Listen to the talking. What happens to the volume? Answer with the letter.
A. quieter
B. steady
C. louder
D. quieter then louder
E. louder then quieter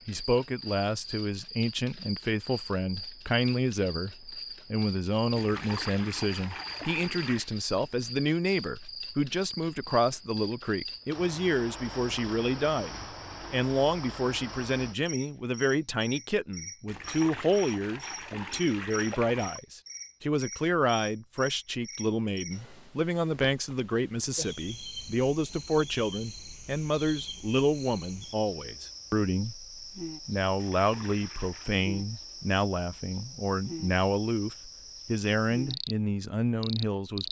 B.